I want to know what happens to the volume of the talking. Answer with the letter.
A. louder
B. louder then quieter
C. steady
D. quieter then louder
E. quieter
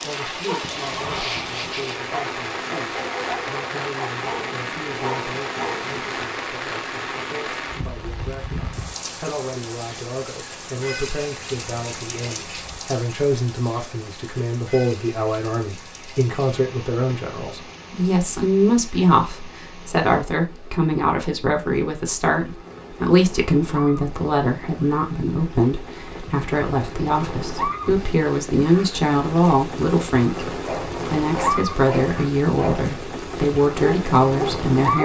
A.